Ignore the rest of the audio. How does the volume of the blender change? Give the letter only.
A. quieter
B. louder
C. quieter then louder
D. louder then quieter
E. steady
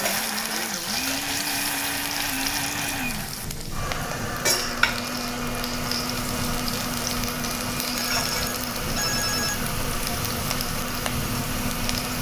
E.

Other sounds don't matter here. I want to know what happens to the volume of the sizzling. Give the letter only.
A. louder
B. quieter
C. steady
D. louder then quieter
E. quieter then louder
C.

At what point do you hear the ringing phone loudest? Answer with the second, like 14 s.
9 s.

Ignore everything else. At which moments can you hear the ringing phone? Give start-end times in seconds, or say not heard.
7.9-9.6.